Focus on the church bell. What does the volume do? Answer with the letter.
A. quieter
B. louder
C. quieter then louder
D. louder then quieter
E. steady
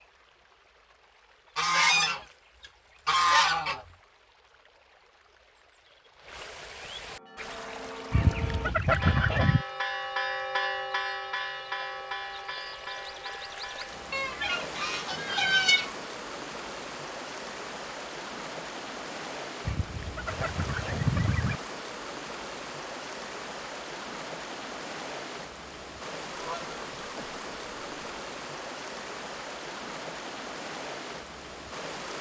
D.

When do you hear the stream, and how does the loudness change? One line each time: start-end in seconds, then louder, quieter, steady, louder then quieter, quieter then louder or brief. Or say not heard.
0.0-32.1 louder.